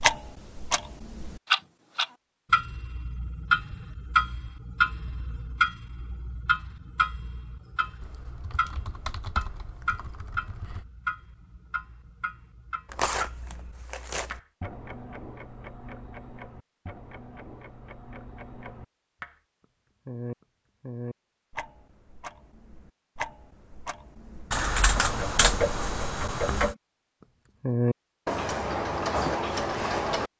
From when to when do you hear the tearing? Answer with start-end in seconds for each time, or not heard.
12.9-14.4.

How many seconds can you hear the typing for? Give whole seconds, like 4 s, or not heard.
5 s.